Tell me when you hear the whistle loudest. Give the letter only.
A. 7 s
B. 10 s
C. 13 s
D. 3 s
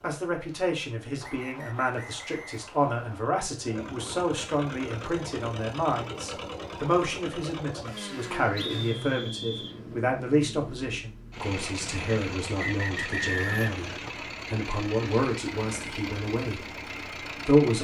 C.